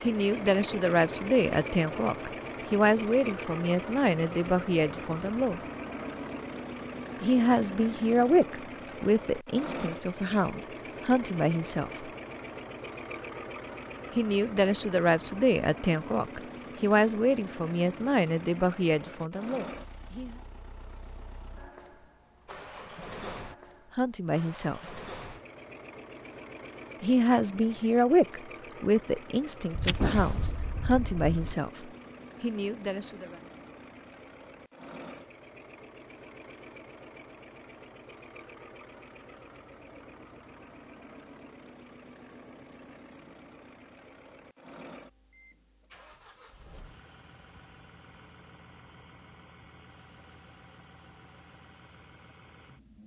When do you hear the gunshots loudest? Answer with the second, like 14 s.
30 s.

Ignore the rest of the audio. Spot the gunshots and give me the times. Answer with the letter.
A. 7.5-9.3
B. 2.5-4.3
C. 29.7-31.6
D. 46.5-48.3
C.